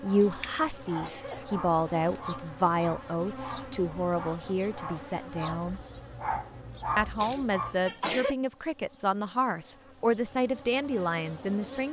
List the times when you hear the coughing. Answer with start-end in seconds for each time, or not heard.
0.2-1.4, 7.2-8.3.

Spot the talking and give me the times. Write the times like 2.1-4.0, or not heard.
0.0-5.8, 7.0-11.8.